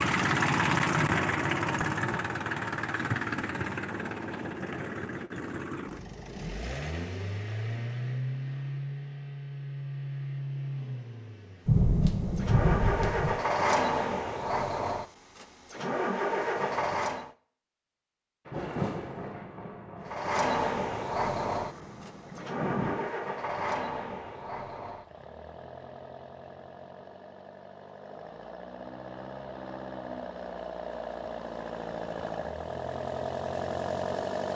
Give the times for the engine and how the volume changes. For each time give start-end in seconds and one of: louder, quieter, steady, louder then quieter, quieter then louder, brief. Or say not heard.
0.0-17.3 quieter then louder
20.0-34.4 quieter then louder.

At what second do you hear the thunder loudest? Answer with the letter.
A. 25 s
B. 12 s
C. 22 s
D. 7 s
B.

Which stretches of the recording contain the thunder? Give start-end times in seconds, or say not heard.
11.7-13.3, 18.4-23.1.